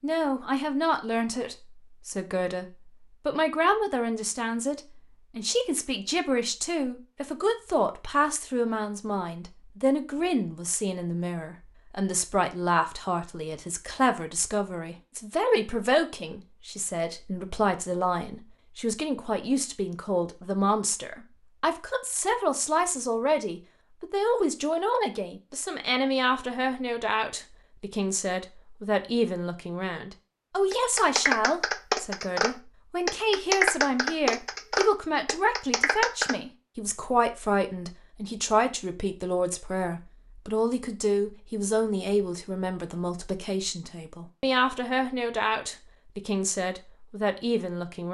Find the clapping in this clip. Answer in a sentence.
The clapping can be heard from 30.7 to 36.4 s.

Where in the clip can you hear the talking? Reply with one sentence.
The talking can be heard from 0.0 to 48.0 s.